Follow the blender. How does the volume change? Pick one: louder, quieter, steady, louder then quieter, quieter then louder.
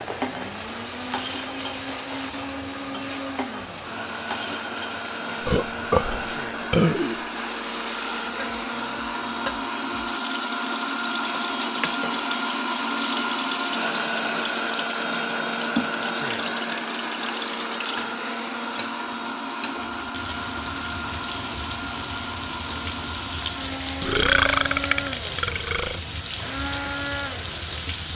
louder then quieter.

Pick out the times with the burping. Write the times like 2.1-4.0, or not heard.
5.5-7.2, 24.0-26.0.